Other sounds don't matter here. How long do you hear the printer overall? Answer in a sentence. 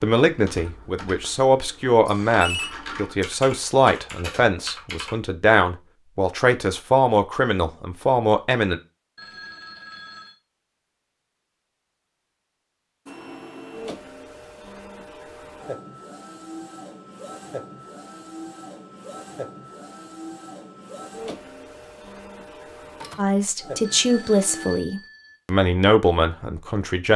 The printer can be heard for 12 seconds in total.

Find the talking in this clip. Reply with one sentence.
You can hear the talking from 0.0 to 8.8 s and from 23.1 to 27.1 s.